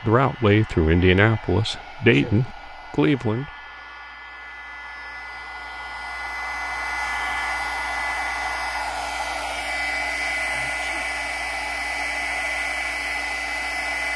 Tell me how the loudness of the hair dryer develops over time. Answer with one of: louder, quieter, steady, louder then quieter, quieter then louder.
louder.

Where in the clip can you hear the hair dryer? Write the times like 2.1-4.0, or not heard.
0.0-14.1.